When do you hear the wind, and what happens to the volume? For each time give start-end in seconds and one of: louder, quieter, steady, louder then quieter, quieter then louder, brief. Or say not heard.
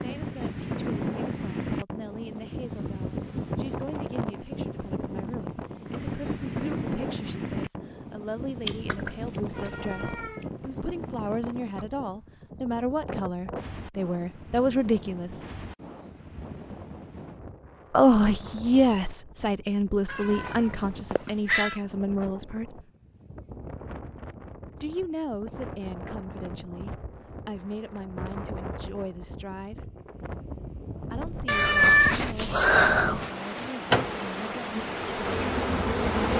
0.0-36.3 quieter then louder.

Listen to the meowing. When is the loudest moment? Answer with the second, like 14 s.
32 s.